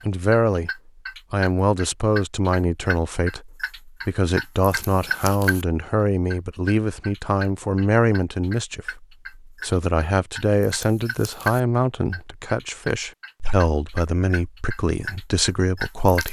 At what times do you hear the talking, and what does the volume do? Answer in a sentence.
You can hear the talking briefly from 0.1 to 0.7 s; and from 1.3 to 16.2 s, at a steady volume.